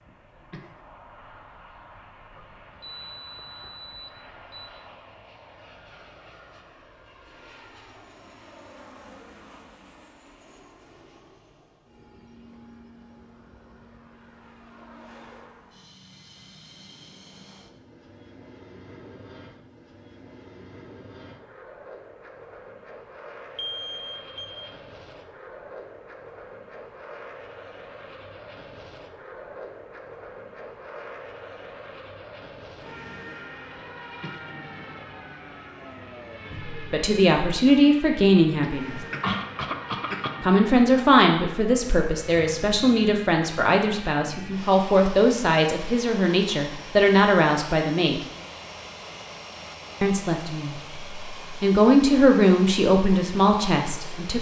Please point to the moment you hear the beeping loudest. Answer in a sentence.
The volume of the beeping peaks at 24 seconds.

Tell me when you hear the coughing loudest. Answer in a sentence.
The loudest moment of the coughing is at 39 seconds.